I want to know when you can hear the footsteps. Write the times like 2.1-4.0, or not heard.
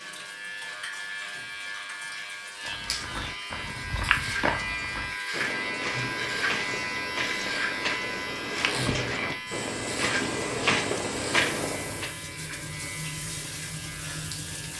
2.6-12.1.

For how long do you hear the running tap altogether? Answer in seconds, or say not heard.
15 s.